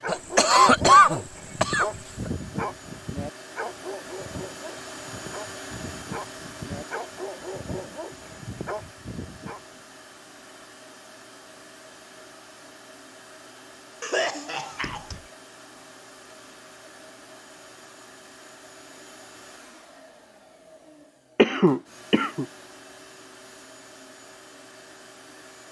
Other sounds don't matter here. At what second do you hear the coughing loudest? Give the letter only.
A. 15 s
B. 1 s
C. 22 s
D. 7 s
B.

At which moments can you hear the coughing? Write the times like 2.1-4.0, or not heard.
0.1-2.3, 14.0-15.2, 21.4-22.4.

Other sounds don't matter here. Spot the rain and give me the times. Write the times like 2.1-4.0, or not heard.
not heard.